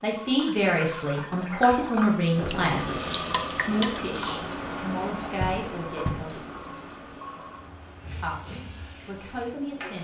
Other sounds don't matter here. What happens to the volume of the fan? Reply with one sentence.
The loudness of the fan goes down.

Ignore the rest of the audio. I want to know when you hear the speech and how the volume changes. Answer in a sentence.
The speech can be heard from 0.0 to 6.7 s, getting quieter; and briefly from 8.2 to 9.9 s.